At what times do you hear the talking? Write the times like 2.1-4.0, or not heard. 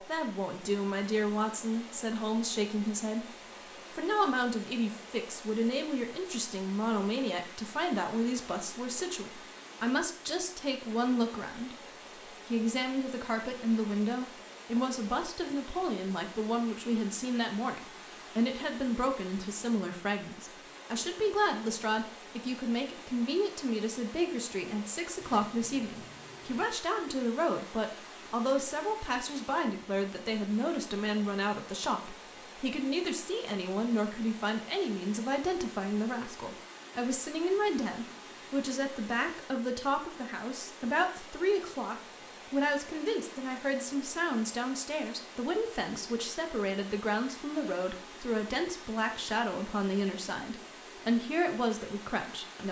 0.0-3.3, 3.9-52.6.